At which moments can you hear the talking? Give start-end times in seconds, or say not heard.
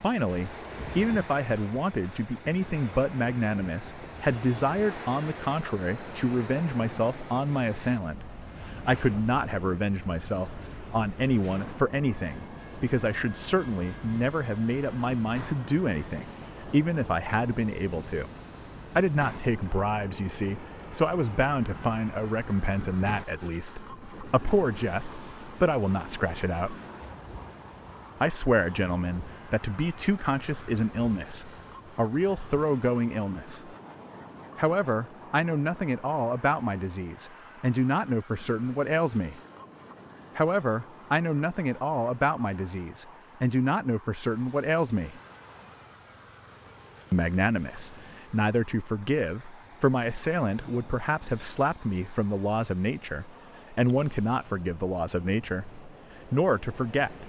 0.0-18.3, 18.9-26.8, 28.2-33.8, 34.5-39.4, 40.4-45.2, 47.1-57.2.